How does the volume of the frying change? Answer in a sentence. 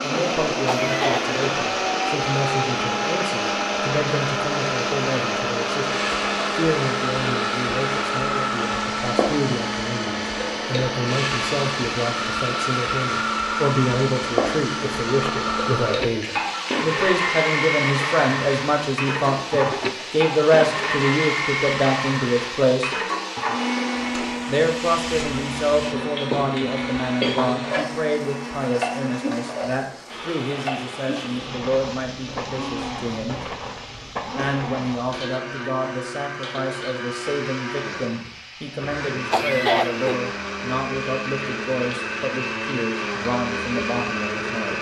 The loudness of the frying goes down.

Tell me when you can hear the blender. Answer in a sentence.
You can hear the blender from 0.0 to 44.7 s.